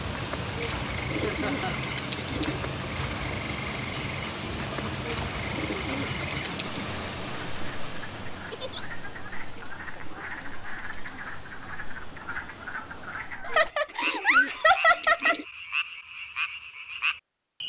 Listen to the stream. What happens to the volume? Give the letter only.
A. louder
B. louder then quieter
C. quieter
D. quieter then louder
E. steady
C.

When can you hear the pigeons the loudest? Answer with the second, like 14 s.
2 s.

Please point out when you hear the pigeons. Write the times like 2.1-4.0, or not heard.
0.6-2.6, 5.0-6.8, 9.5-11.2, 13.4-15.4.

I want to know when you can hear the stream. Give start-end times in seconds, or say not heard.
0.0-13.5.